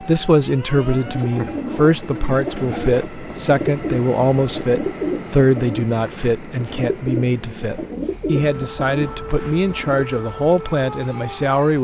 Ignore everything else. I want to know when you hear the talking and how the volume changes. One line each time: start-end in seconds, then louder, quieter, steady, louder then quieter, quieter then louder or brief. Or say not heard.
0.0-11.7 steady.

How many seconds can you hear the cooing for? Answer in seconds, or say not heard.
9 s.